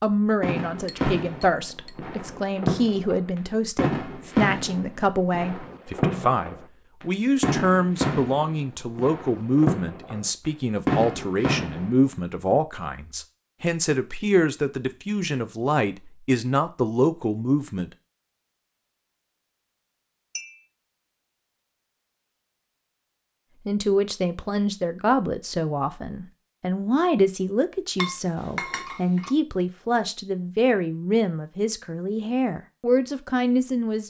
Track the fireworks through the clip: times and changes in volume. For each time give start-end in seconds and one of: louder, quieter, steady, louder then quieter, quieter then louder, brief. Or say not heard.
0.4-11.9 steady.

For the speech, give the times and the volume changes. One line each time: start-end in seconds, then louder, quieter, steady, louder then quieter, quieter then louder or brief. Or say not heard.
0.0-17.9 steady
23.6-34.0 steady.